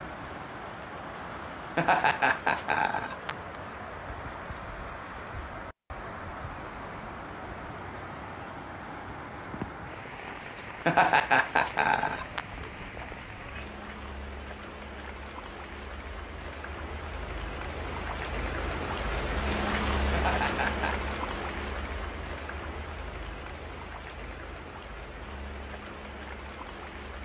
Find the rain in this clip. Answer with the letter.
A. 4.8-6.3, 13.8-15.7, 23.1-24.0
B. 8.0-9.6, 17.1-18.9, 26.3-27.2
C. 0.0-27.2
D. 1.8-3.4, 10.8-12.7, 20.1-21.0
C.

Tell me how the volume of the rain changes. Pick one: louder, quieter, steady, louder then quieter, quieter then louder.
louder then quieter.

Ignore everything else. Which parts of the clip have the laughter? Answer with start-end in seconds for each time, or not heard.
1.8-3.4, 10.8-12.7, 20.1-21.0.